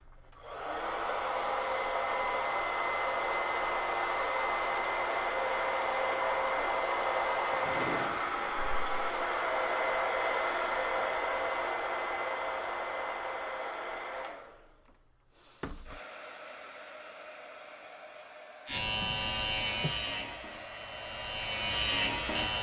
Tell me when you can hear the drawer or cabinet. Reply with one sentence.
The drawer or cabinet can be heard from 7.5 to 8.2 s and from 18.6 to 20.0 s.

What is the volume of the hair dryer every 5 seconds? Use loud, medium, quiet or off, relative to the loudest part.
loud, loud, loud, quiet, quiet.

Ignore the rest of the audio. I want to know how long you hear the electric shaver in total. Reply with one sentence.
The electric shaver can be heard for 4 seconds in total.